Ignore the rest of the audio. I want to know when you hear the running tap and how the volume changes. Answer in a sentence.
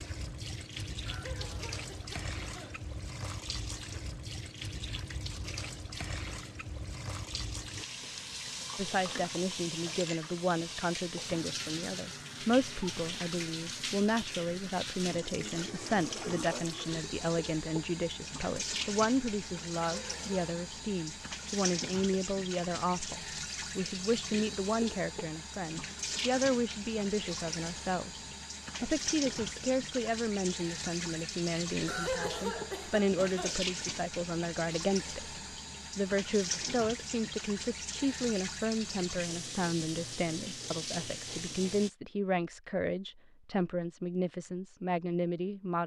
The running tap can be heard from 0.0 to 41.9 s, at a steady volume.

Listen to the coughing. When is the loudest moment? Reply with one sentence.
The loudest moment of the coughing is at 32 seconds.